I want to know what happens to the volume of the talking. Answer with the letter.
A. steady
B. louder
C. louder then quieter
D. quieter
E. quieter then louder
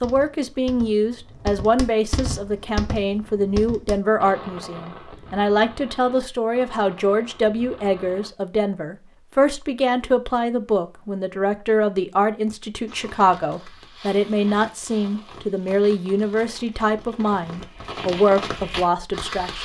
A.